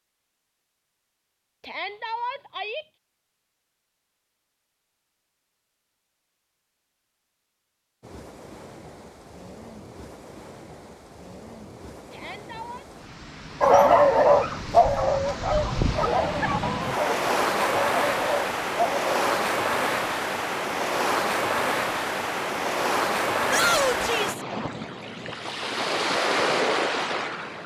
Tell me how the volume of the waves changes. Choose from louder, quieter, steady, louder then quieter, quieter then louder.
louder.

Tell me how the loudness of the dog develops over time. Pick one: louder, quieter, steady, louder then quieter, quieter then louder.
quieter.